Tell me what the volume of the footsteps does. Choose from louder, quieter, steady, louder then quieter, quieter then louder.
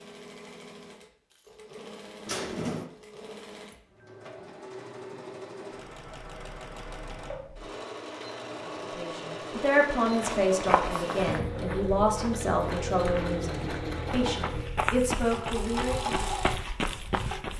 quieter then louder.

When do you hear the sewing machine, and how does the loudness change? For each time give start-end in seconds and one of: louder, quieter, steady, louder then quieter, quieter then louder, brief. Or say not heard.
0.0-17.5 louder.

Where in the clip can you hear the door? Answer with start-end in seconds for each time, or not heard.
2.2-2.9, 11.2-11.7.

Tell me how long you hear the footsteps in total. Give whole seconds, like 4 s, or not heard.
7 s.